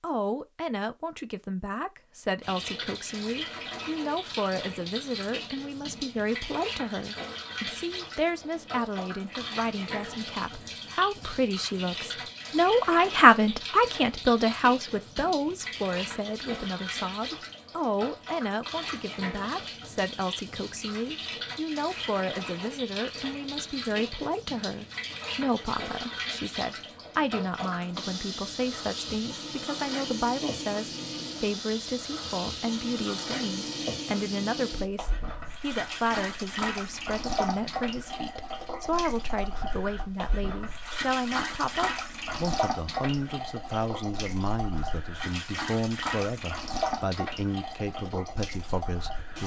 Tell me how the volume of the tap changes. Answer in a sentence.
The volume of the tap stays about the same.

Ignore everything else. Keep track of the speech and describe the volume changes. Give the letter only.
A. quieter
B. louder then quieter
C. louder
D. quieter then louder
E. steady
B.